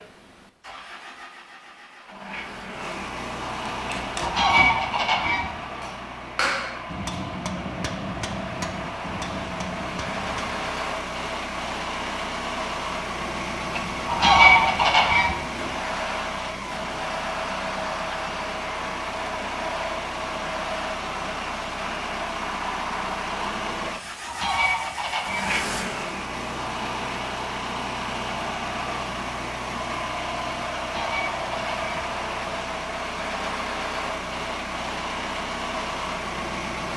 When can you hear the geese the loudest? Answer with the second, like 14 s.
14 s.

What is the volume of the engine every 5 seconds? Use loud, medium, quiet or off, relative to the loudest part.
medium, medium, loud, loud, loud, loud, loud, loud.